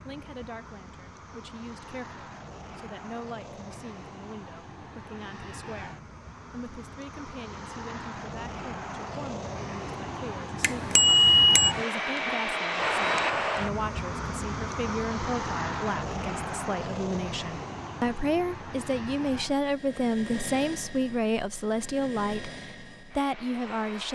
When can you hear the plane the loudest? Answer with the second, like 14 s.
13 s.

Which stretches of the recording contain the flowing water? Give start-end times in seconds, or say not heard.
not heard.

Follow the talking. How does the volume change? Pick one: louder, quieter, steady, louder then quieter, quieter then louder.
louder.